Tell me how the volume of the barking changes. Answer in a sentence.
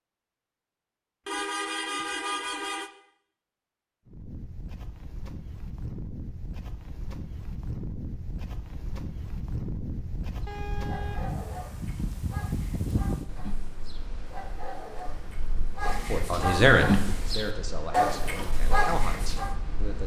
The volume of the barking goes up.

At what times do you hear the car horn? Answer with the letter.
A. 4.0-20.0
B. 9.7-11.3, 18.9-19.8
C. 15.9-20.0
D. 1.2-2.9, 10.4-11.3
D.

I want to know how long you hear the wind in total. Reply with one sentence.
You can hear the wind for 16 seconds altogether.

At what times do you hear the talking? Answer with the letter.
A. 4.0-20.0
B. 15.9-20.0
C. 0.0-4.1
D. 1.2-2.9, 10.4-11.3
B.